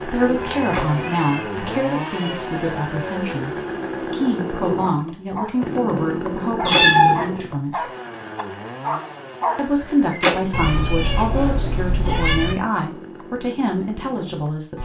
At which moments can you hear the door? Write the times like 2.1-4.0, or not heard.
0.6-1.0, 6.6-7.0, 10.1-10.5.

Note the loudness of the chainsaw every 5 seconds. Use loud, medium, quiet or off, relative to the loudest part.
loud, loud, medium.